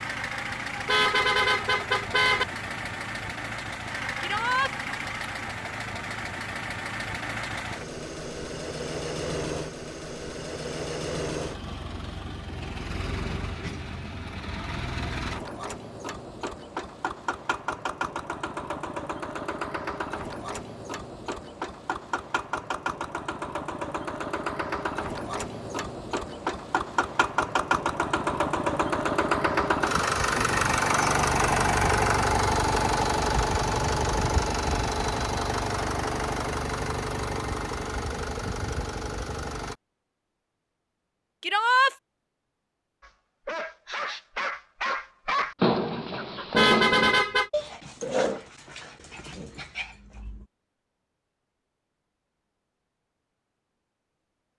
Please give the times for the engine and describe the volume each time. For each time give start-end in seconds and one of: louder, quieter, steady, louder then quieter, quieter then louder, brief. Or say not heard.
0.0-39.8 louder.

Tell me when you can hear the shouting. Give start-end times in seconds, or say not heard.
4.2-4.7, 41.4-42.0.